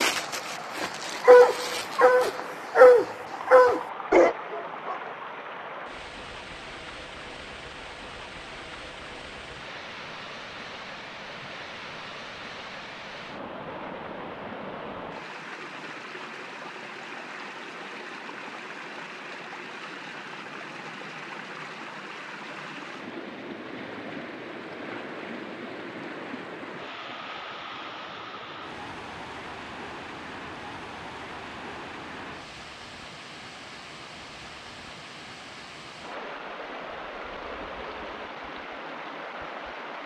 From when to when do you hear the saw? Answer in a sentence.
You can't hear the saw here.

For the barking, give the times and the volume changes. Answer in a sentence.
The barking can be heard from 0.0 to 5.2 s, getting louder then quieter.